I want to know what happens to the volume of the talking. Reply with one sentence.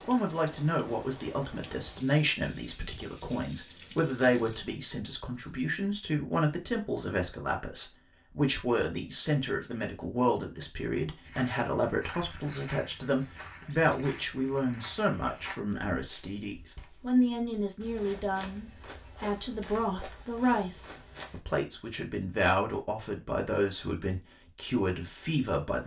The volume of the talking stays about the same.